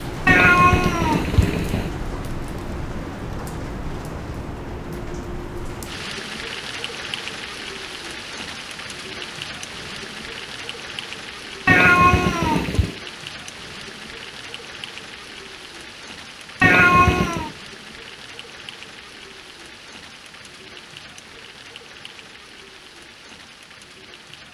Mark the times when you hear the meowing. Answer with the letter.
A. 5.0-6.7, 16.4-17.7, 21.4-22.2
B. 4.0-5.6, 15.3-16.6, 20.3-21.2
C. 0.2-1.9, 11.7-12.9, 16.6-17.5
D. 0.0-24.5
C.